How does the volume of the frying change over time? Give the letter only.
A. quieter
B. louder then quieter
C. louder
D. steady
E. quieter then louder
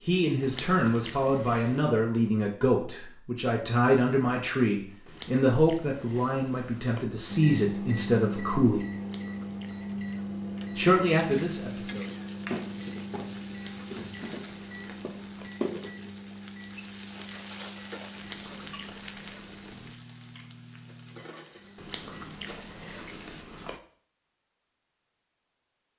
A.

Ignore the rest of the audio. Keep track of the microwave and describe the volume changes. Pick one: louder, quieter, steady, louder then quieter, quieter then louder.
quieter.